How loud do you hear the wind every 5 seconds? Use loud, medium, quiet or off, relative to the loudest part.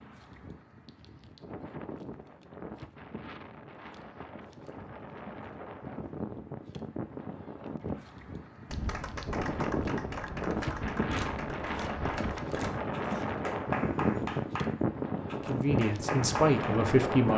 quiet, medium, loud, loud.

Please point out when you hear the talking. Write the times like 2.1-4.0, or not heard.
15.3-17.3.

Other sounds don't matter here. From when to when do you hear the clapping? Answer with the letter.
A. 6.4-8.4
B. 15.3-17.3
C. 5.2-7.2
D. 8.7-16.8
D.